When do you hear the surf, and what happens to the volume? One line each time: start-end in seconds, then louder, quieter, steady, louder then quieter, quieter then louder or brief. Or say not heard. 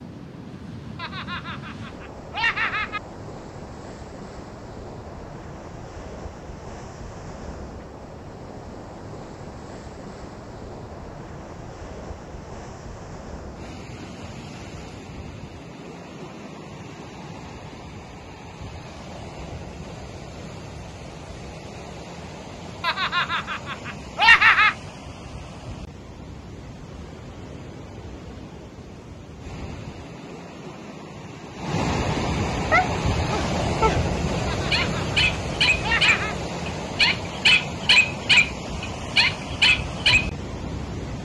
0.0-41.2 louder.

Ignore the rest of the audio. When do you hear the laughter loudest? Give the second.
24 s.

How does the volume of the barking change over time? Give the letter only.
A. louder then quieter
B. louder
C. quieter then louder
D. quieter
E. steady
B.